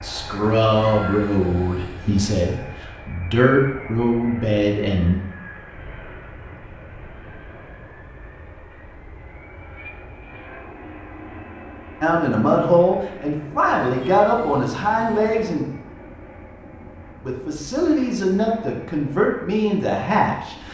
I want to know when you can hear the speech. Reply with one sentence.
You can hear the speech from 0.0 to 5.2 s, from 12.0 to 15.7 s and from 17.2 to 20.6 s.